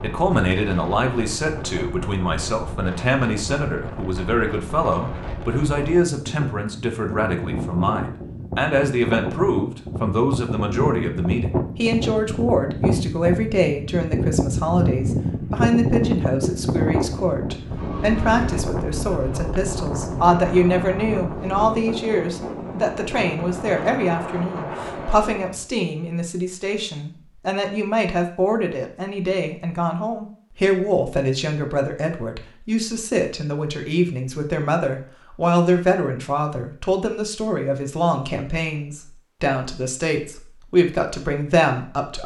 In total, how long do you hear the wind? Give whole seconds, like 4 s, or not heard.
26 s.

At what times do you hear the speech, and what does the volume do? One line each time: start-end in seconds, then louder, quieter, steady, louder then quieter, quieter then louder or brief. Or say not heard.
0.0-42.2 steady.